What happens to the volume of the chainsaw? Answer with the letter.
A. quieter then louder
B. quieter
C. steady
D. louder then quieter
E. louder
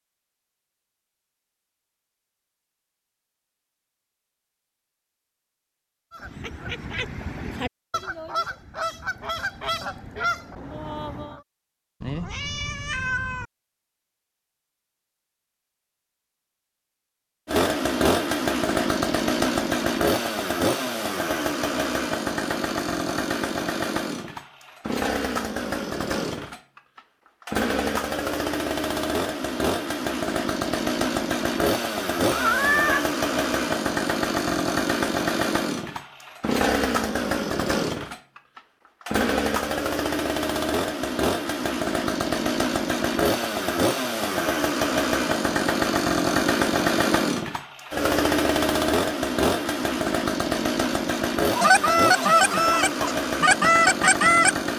C.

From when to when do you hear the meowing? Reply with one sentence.
The meowing can be heard from 12.0 to 13.4 s and from 32.3 to 33.0 s.